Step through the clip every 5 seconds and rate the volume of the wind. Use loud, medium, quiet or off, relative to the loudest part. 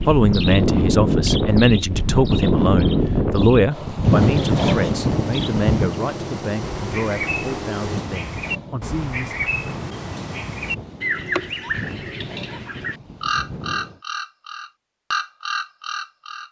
loud, medium, quiet, off.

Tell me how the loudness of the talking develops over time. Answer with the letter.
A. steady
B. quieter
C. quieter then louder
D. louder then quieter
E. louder
B.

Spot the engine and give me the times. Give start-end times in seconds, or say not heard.
4.2-8.1.